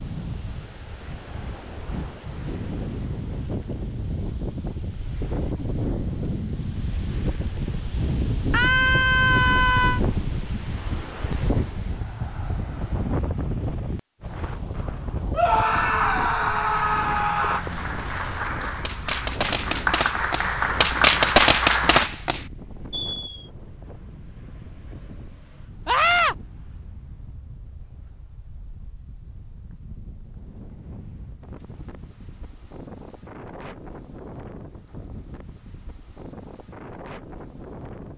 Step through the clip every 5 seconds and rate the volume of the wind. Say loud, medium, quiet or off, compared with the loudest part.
medium, loud, loud, medium, quiet, quiet, quiet, quiet.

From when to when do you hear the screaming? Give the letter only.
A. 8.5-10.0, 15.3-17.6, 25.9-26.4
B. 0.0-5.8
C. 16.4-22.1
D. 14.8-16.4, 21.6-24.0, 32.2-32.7
A.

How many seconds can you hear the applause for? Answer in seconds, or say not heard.
6 s.